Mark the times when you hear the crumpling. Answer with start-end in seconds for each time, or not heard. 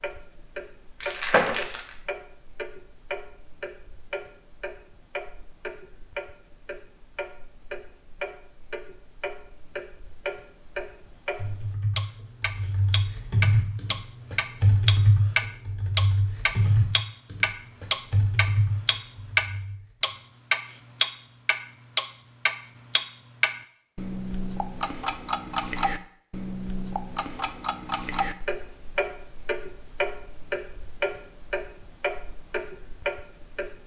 1.0-1.9.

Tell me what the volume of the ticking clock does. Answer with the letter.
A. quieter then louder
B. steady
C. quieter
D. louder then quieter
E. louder
D.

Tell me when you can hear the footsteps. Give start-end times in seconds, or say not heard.
not heard.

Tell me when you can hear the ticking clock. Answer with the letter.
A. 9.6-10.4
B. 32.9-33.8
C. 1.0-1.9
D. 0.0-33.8
D.